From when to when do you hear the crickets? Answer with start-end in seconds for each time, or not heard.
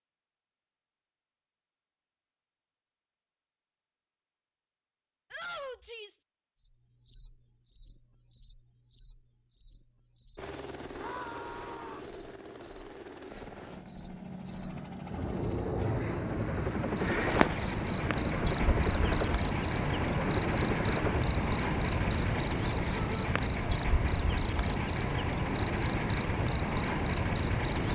6.6-27.9.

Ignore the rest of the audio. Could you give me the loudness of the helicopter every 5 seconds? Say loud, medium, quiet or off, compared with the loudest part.
off, off, medium, loud, loud, off.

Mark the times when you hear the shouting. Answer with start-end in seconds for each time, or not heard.
5.3-6.2, 10.9-12.1, 22.9-23.4.